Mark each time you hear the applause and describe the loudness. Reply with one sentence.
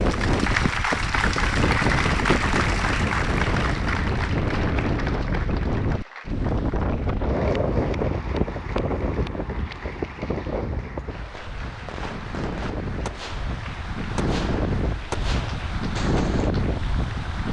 You can hear the applause from 0.0 to 17.4 s, getting quieter.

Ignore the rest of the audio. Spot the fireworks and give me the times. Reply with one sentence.
The fireworks can be heard from 11.3 to 16.5 s.